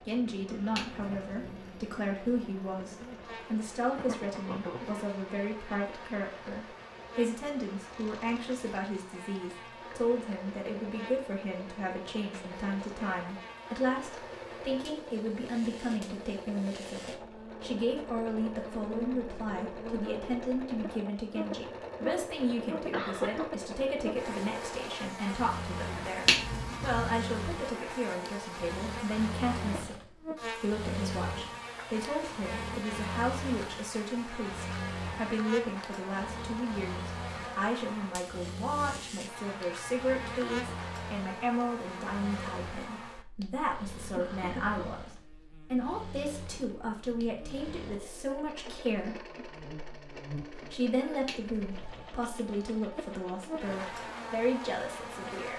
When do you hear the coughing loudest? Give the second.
23 s.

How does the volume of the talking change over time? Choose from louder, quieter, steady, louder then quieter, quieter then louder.
steady.